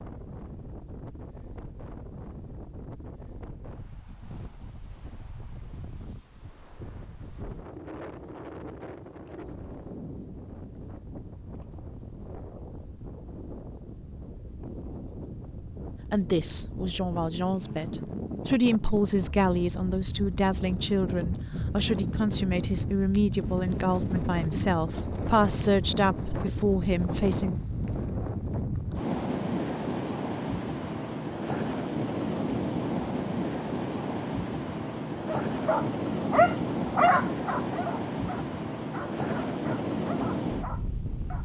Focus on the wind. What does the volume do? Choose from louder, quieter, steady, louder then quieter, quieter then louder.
louder.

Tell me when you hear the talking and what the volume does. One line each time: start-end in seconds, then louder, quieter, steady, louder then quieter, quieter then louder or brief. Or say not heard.
16.1-27.6 steady.